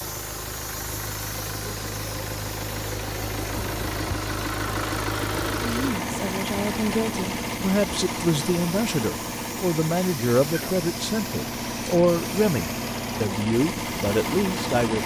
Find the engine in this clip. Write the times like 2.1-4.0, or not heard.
0.0-15.0.